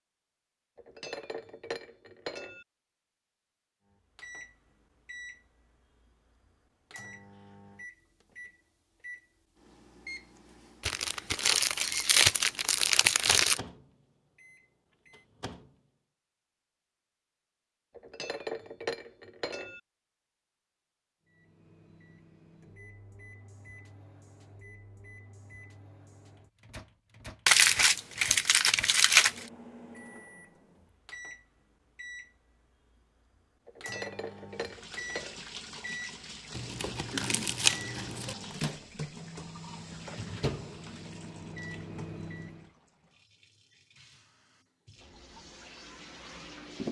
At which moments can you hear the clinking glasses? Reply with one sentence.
You can hear the clinking glasses from 0.8 to 2.6 s, from 17.9 to 19.8 s and from 33.6 to 35.4 s.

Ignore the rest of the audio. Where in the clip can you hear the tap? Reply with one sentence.
The tap can be heard from 34.5 to 46.8 s.